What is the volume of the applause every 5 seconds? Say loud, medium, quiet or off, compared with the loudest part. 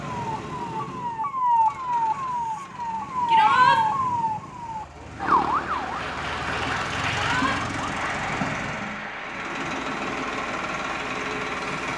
off, loud, loud.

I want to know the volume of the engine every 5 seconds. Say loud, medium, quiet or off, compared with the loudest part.
medium, loud, loud.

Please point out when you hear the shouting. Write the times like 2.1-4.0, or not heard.
3.2-3.8, 7.1-7.5.